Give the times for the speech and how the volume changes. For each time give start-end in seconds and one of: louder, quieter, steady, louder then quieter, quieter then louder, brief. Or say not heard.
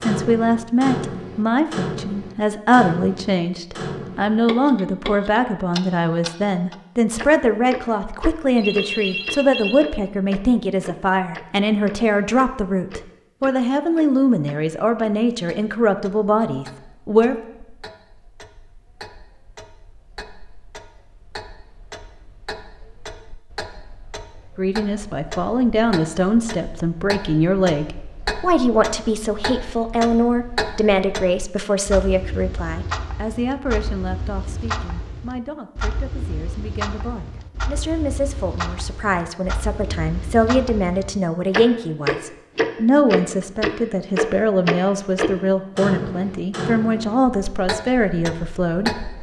0.0-17.4 steady
24.6-48.9 quieter then louder.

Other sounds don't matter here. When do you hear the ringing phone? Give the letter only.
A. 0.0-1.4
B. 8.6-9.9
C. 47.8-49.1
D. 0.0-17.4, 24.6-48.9
B.